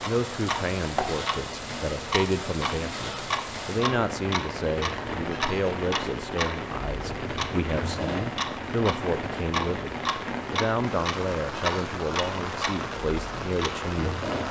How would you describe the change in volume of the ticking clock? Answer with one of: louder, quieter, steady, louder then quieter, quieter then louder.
steady.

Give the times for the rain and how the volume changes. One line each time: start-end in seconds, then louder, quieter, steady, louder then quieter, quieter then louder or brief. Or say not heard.
0.0-14.4 steady.